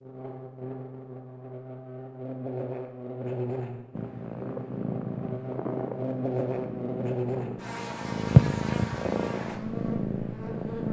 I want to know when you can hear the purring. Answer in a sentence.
You can hear the purring from 4.0 to 10.8 s.